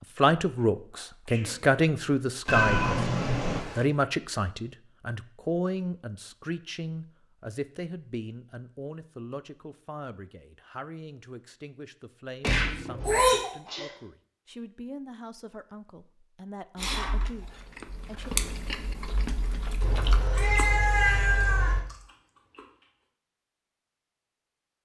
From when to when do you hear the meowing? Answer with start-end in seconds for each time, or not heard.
2.5-3.9, 12.4-13.4, 19.8-21.8.